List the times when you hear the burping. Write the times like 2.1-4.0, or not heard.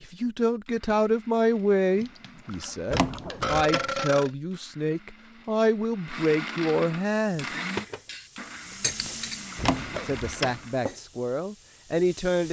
1.9-4.3, 9.1-10.4.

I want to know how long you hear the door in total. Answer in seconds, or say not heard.
2 s.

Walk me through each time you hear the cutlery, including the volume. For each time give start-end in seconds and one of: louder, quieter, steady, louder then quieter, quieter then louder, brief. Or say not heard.
not heard.